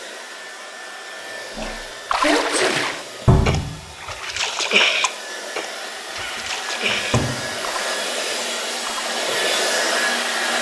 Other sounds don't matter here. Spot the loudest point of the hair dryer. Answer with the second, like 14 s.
10 s.